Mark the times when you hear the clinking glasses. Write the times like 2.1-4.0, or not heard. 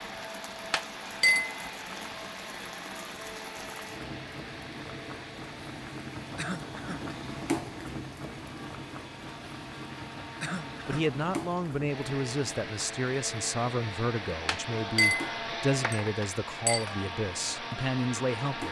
0.7-1.6, 14.4-16.9.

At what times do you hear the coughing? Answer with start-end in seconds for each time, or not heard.
6.3-7.0, 10.4-11.1.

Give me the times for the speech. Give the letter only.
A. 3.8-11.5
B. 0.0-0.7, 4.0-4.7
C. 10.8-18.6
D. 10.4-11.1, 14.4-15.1
C.